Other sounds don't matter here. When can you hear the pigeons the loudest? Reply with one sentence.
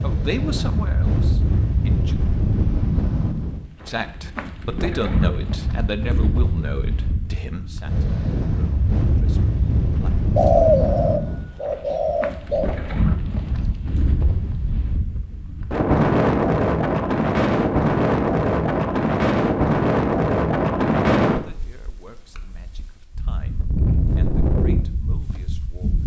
The loudest moment of the pigeons is at 11 seconds.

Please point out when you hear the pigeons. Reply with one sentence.
You can hear the pigeons from 10.3 to 12.8 s.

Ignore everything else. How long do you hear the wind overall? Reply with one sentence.
The wind can be heard for 26 seconds in total.